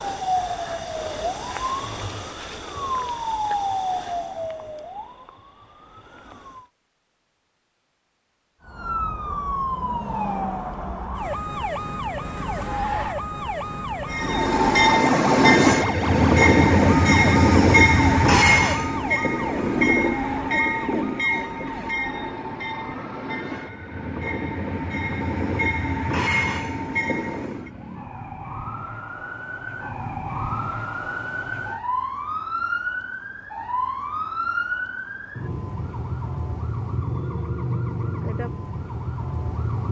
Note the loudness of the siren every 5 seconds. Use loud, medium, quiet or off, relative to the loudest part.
loud, loud, loud, loud, medium, medium, loud, loud.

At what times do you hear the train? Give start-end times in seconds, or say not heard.
14.1-27.7.